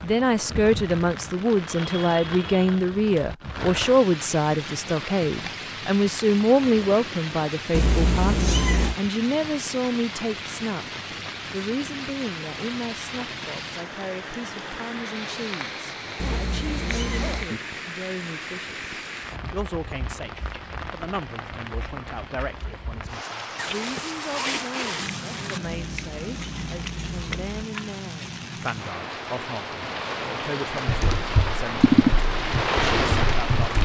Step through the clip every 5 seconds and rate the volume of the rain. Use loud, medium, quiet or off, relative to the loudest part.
medium, medium, medium, medium, medium, medium, loud.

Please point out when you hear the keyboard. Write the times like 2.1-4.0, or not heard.
30.9-33.7.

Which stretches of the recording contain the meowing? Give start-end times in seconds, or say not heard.
7.7-8.9, 16.1-17.5, 25.8-27.6.